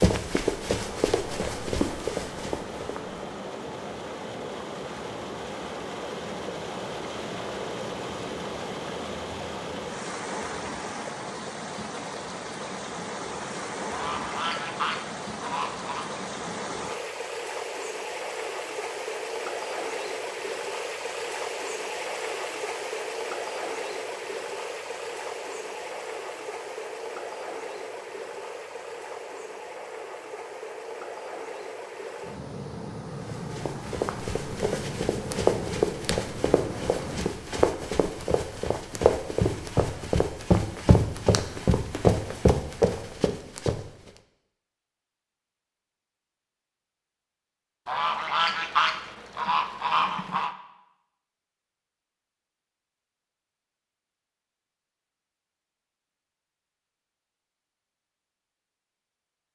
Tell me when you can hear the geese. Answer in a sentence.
You can hear the geese from 13.9 to 16.1 s and from 47.9 to 50.5 s.